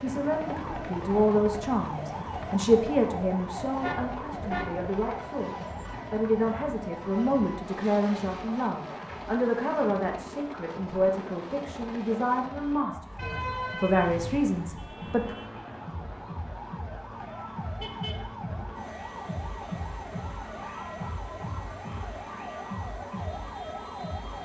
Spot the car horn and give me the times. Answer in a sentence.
You can hear the car horn from 3.8 to 4.7 s, from 13.2 to 14.4 s and from 17.8 to 18.2 s.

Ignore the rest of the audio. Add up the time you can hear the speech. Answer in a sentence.
You can hear the speech for 15 seconds altogether.